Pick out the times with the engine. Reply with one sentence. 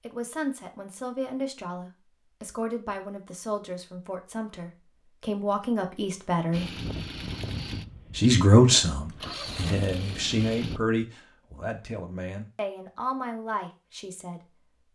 You can hear the engine from 6.5 to 10.8 s.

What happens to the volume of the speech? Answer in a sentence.
The volume of the speech goes up, then down.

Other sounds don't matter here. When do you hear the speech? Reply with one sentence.
You can hear the speech from 0.0 to 6.8 s and from 8.2 to 14.7 s.